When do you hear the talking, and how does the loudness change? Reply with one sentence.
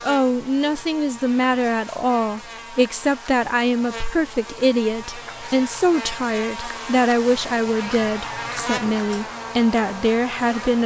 The talking can be heard from 0.0 to 10.8 s, at a steady volume.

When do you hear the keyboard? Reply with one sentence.
You can't hear the keyboard here.